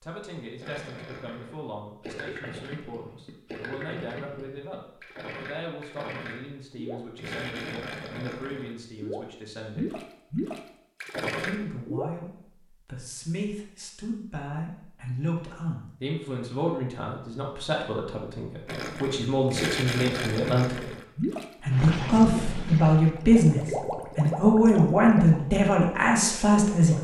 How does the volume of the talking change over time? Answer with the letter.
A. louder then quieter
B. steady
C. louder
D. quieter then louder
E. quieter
C.